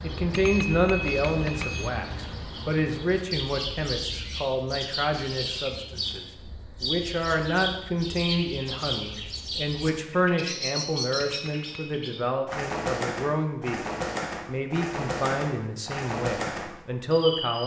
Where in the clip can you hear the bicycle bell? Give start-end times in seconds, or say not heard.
0.3-1.9, 11.2-11.9.